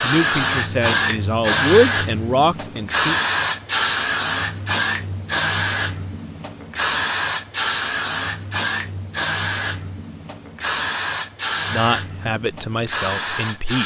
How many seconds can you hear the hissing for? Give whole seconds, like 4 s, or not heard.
14 s.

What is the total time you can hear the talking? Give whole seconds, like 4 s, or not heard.
5 s.